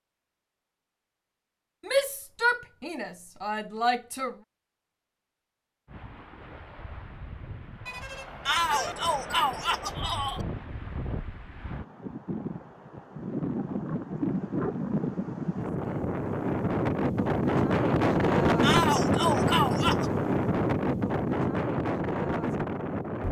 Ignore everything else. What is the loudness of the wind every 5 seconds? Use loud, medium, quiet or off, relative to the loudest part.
off, quiet, medium, loud, loud.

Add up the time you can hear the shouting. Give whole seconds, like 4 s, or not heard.
6 s.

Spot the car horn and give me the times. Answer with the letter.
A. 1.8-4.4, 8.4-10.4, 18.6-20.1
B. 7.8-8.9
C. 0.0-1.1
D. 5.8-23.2
B.